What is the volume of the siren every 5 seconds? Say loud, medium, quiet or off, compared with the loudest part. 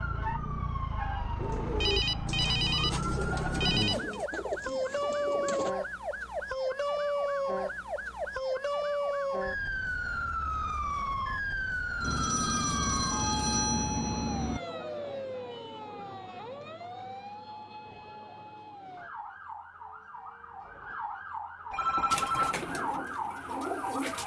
loud, loud, loud, medium, medium.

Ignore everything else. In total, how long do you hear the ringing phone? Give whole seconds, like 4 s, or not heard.
6 s.